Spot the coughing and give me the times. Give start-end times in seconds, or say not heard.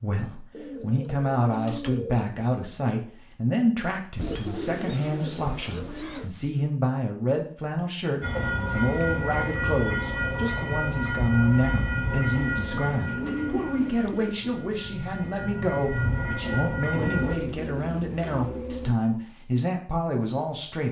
not heard.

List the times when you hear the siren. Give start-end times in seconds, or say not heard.
not heard.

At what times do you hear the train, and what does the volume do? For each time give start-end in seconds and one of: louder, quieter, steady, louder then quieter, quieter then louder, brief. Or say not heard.
8.2-17.4 quieter then louder.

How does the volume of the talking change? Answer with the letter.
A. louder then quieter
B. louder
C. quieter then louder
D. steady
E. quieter
D.